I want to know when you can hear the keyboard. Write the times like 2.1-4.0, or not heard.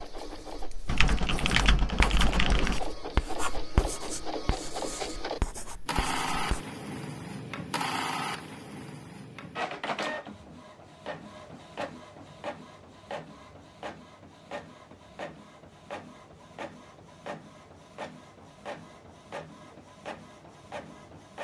0.8-2.8.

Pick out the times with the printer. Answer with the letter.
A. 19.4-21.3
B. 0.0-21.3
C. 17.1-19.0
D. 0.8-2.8
B.